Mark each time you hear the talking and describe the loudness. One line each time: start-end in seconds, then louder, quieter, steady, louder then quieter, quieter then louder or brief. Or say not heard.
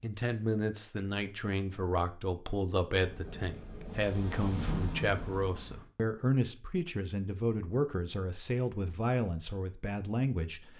0.0-10.7 steady.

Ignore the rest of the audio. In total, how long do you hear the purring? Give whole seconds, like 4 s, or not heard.
3 s.